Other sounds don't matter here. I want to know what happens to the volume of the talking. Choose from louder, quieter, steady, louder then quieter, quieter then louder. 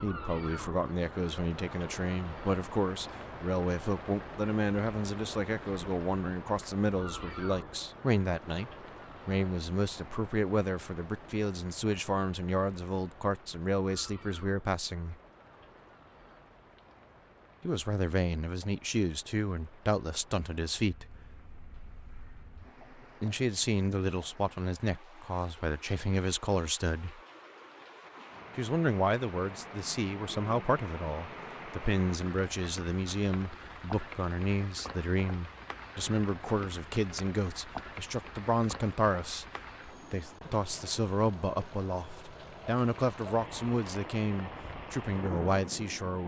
steady.